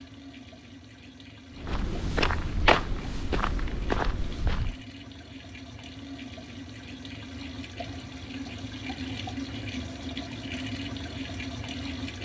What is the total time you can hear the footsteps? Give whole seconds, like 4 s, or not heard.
3 s.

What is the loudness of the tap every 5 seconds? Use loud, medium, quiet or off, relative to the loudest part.
medium, loud, loud.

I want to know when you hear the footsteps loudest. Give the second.
3 s.